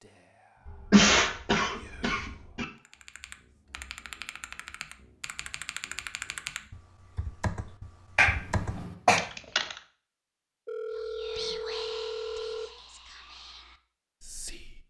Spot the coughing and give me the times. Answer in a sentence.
You can hear the coughing from 0.7 to 2.6 s and from 8.2 to 9.2 s.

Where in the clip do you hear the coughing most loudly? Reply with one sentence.
The loudest moment of the coughing is at 1 second.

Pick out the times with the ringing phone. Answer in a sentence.
You can hear the ringing phone from 10.7 to 12.7 s.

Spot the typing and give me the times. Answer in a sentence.
The typing can be heard from 2.9 to 9.8 s.